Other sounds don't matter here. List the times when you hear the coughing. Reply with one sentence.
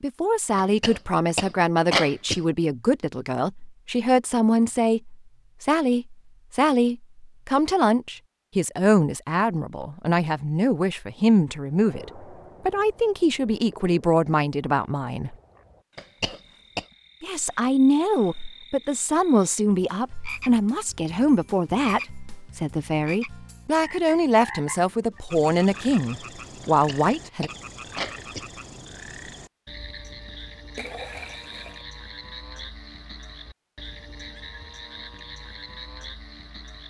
The coughing can be heard from 0.6 to 2.5 s, from 15.9 to 16.9 s and from 26.6 to 28.5 s.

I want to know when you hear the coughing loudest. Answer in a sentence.
The loudest moment of the coughing is at 2 seconds.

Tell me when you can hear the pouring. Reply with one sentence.
The pouring can be heard from 30.8 to 31.9 s.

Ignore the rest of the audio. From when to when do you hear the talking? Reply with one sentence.
The talking can be heard from 0.0 to 15.3 s and from 17.2 to 27.5 s.